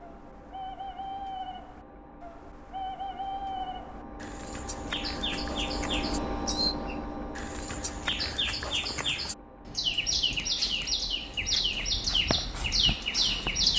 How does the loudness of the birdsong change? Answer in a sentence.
The volume of the birdsong goes up.